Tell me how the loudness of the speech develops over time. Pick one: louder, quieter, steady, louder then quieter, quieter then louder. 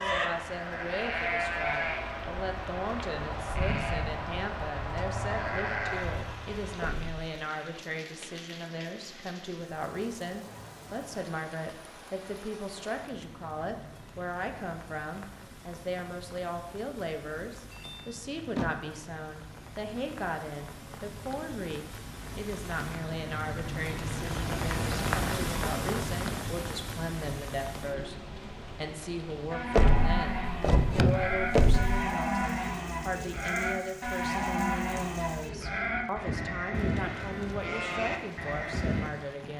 steady.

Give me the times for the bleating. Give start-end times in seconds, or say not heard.
0.0-6.8, 29.5-39.1.